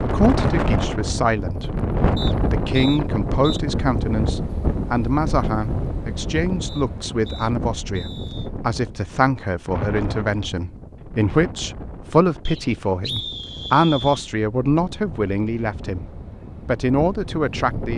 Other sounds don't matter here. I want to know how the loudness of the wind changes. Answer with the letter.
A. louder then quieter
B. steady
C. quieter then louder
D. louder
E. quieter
E.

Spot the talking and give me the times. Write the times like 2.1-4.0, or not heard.
0.0-1.7, 2.5-16.1, 16.6-17.9.